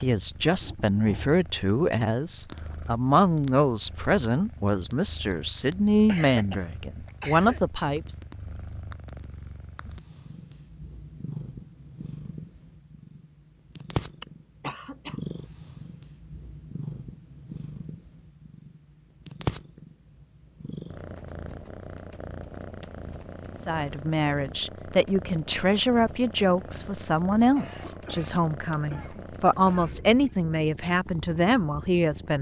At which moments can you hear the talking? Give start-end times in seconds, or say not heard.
0.0-8.2, 23.6-32.3.